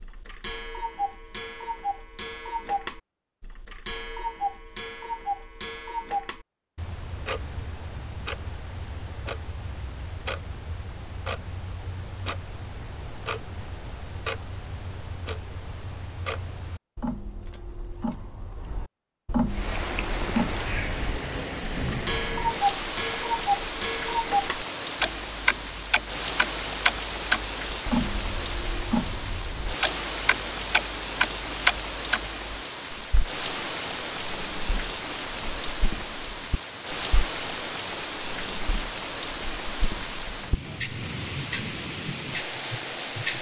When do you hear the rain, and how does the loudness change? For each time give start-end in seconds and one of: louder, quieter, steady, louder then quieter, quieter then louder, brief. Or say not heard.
19.4-43.3 steady.